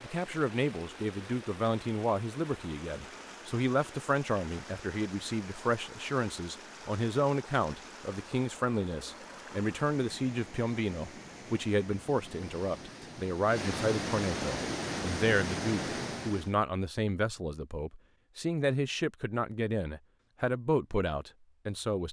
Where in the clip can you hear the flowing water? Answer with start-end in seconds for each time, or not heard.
0.0-16.6.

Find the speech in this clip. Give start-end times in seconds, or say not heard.
0.0-22.0.